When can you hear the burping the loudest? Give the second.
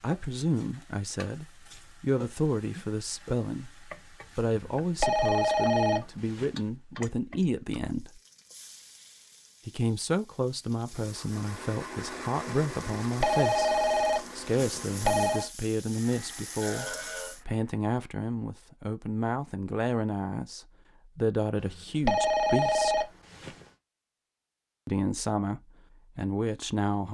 17 s.